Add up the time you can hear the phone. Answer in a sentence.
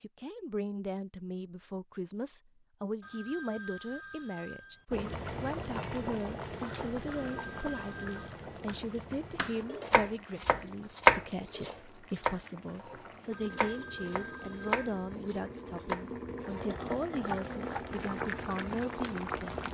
You can hear the phone for 5 seconds altogether.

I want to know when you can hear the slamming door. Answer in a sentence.
The slamming door can't be heard in this clip.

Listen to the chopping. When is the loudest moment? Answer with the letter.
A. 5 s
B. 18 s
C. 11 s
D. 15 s
C.